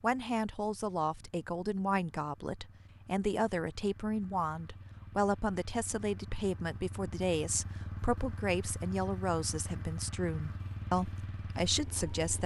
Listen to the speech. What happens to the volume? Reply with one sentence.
The loudness of the speech stays about the same.